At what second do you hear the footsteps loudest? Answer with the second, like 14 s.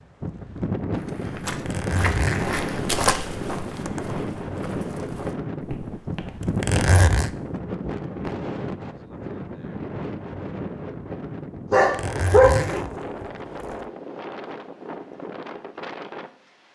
3 s.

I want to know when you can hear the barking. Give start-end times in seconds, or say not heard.
11.7-12.6.